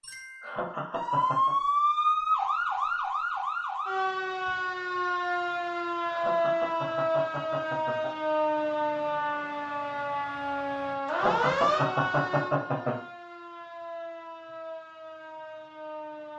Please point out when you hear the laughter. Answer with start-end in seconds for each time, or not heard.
0.4-1.6, 6.0-8.1, 11.1-12.9.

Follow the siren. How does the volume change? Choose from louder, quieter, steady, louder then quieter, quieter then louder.
quieter.